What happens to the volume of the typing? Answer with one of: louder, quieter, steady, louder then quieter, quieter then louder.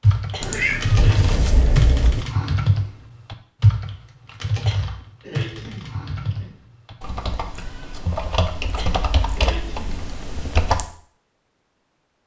quieter.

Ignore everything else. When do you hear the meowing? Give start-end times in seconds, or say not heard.
0.4-2.2, 7.5-9.0.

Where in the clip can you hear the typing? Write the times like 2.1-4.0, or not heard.
0.0-10.8.